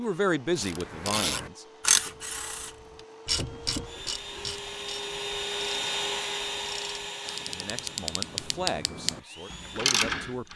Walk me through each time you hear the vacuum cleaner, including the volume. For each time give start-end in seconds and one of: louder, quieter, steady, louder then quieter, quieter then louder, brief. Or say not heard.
0.0-10.5 louder then quieter.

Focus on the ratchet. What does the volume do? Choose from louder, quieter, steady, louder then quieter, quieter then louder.
quieter then louder.